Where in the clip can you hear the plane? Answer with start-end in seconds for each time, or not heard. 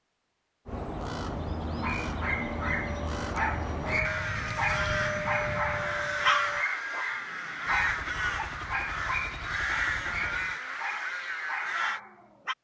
2.2-6.7.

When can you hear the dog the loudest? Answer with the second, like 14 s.
6 s.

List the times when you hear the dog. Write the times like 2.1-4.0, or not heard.
1.8-12.5.